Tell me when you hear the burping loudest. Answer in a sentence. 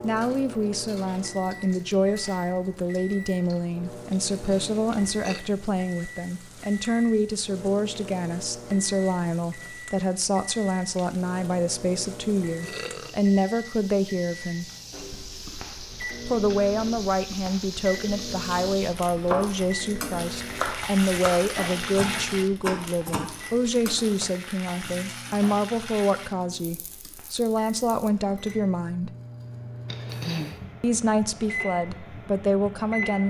The volume of the burping peaks at 30 seconds.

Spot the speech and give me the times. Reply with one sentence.
You can hear the speech from 0.0 to 14.7 s, from 16.2 to 29.1 s and from 30.8 to 33.2 s.